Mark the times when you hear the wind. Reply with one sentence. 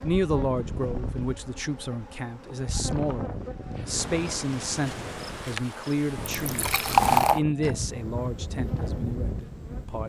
You can hear the wind from 0.0 to 10.0 s.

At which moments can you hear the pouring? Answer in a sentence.
You can hear the pouring from 6.4 to 7.4 s.